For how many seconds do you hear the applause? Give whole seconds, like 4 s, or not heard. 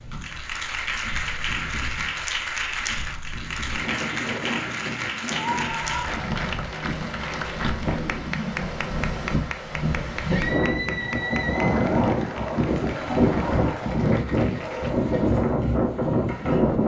15 s.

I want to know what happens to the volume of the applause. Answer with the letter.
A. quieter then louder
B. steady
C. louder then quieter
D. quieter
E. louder
D.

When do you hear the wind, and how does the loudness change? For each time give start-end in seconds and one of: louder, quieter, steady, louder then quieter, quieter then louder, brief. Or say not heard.
0.0-16.8 louder.